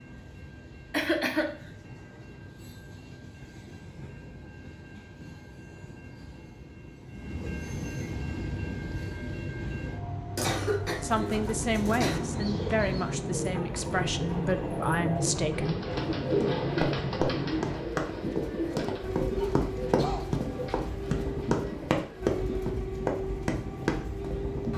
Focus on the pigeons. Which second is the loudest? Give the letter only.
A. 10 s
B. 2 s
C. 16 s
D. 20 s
C.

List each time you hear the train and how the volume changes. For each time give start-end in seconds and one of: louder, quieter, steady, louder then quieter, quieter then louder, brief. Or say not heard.
0.0-24.7 louder.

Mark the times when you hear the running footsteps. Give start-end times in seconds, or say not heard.
15.9-24.7.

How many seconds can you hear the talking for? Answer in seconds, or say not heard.
5 s.